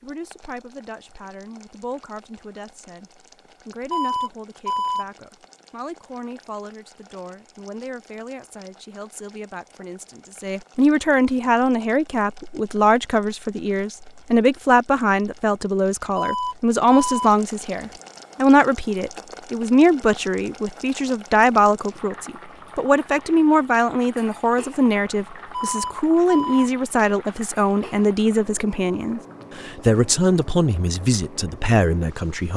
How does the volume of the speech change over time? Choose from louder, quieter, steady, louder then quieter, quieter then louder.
louder.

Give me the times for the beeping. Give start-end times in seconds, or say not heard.
3.9-5.0, 16.1-17.3, 25.4-26.7.